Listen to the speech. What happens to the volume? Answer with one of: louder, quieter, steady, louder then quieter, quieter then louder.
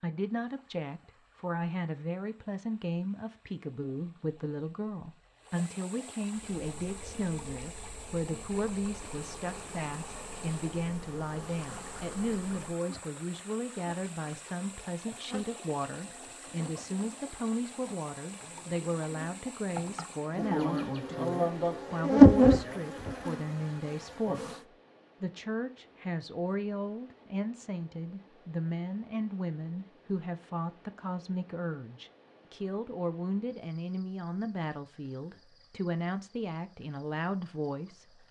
steady.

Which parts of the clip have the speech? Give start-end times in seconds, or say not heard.
0.0-24.6, 25.2-38.2.